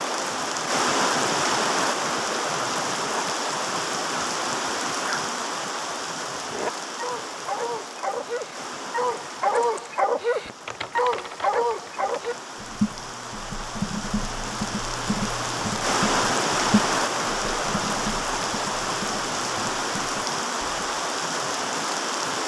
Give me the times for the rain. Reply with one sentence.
You can hear the rain from 0.0 to 22.4 s.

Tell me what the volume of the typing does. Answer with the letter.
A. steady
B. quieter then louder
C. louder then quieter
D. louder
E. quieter
C.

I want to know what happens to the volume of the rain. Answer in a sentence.
The volume of the rain goes down, then up.